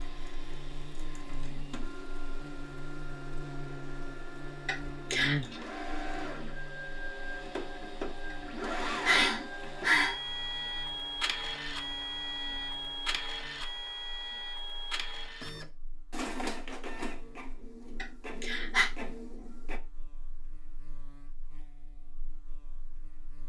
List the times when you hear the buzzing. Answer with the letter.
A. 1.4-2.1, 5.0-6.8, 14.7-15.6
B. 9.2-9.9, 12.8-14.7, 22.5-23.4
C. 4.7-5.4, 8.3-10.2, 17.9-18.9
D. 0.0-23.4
D.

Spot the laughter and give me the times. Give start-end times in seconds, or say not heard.
not heard.